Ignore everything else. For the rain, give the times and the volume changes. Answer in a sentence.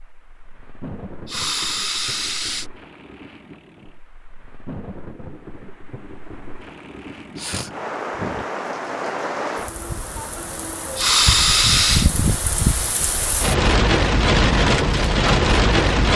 The rain can be heard from 0.0 to 16.1 s, getting louder.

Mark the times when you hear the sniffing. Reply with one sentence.
You can hear the sniffing from 1.2 to 2.6 s, from 7.3 to 8.5 s and from 10.9 to 12.1 s.